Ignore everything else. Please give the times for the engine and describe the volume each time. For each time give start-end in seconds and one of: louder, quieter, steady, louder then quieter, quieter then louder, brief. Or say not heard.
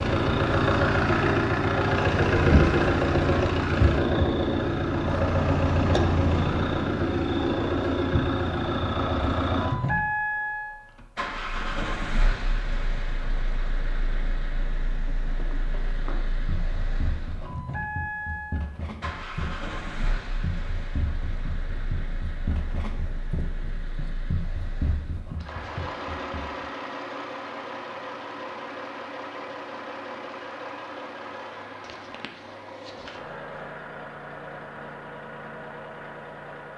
0.0-36.7 quieter.